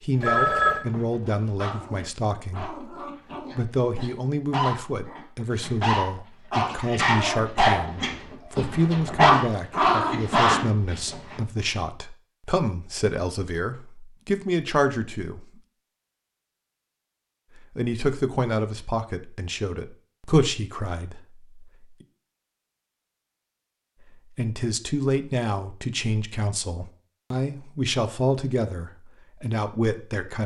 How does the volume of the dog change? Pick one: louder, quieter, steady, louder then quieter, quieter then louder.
louder.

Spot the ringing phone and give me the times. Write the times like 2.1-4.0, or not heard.
0.2-0.8.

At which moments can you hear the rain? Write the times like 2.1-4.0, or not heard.
not heard.